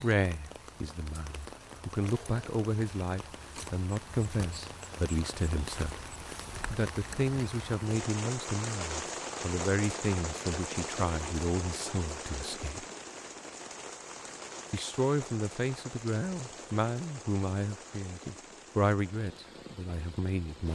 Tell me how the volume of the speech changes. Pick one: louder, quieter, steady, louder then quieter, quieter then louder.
steady.